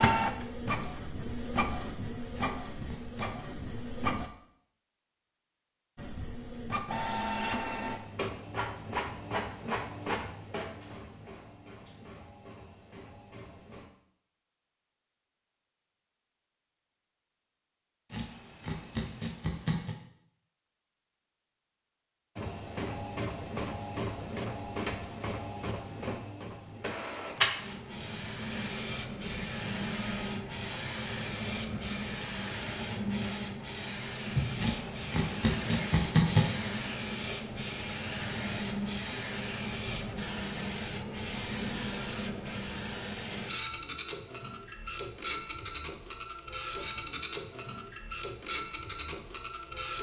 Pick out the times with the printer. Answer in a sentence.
You can hear the printer from 0.0 to 4.3 s, from 6.0 to 13.8 s and from 22.4 to 49.9 s.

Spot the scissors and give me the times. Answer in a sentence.
You can hear the scissors from 2.3 to 3.4 s, from 18.1 to 19.9 s and from 34.5 to 36.5 s.